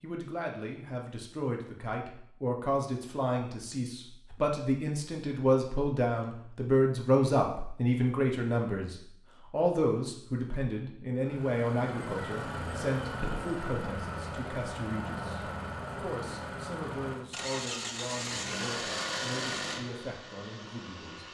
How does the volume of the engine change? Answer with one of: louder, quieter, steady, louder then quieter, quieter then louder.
steady.